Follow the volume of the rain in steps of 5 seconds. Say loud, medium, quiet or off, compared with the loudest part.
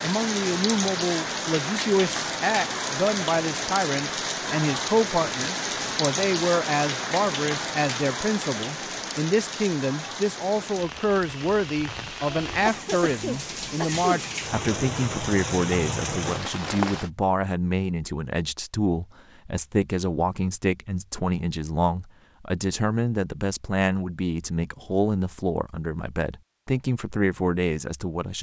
loud, loud, medium, loud, off, off.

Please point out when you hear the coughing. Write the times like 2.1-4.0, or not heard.
12.7-14.2.